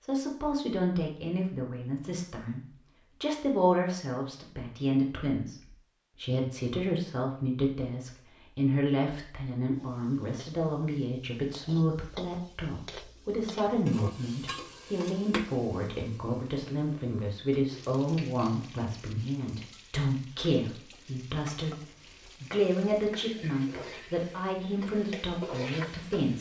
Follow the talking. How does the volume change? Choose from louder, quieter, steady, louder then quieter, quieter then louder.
steady.